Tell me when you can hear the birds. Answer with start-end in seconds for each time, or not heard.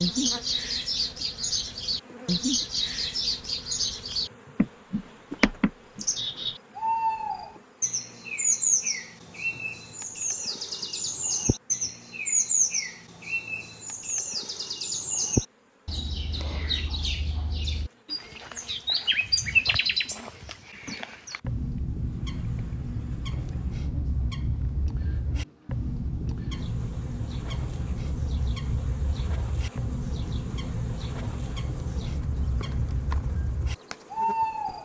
0.0-34.8.